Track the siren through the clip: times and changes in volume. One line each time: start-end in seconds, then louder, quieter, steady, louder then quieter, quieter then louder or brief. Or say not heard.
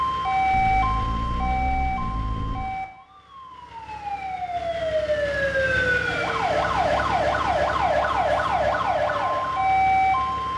0.0-10.5 quieter then louder.